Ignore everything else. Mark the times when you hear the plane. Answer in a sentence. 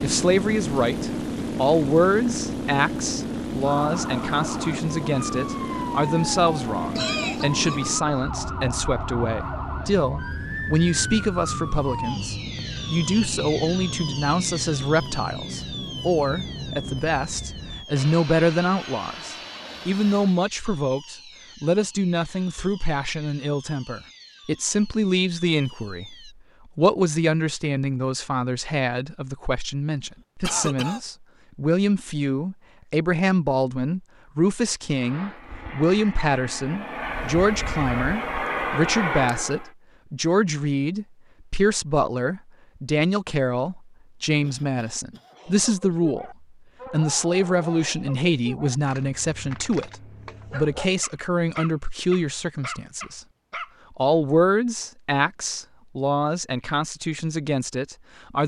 The plane can be heard from 0.0 to 20.4 s and from 35.0 to 39.7 s.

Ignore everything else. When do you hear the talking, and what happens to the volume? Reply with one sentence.
The talking can be heard from 0.0 to 53.2 s, at a steady volume; and from 54.0 to 58.4 s, getting quieter.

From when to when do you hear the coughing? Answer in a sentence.
The coughing can be heard from 6.9 to 7.8 s, from 30.0 to 31.0 s and from 44.4 to 46.0 s.